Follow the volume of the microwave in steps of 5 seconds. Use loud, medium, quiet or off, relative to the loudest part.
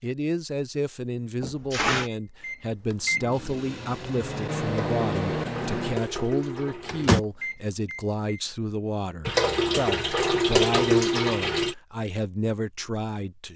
loud, loud, off.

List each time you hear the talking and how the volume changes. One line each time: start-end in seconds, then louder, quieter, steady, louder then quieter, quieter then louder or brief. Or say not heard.
0.0-13.5 steady.